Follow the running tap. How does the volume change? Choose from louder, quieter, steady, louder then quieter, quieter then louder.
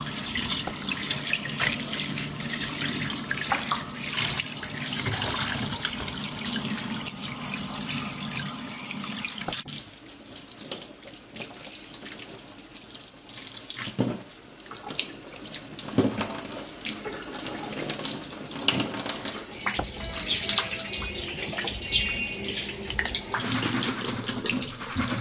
quieter then louder.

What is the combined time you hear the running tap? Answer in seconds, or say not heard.
25 s.